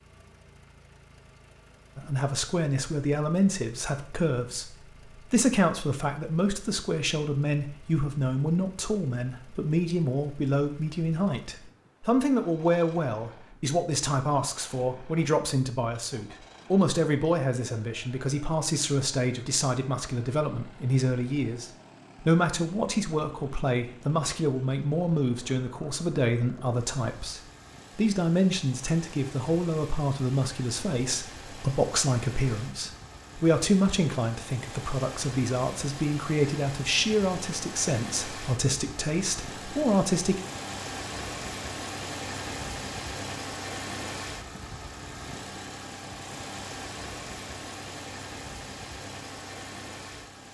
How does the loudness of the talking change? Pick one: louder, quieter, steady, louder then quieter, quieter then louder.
steady.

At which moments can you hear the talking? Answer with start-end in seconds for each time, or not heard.
1.9-40.4.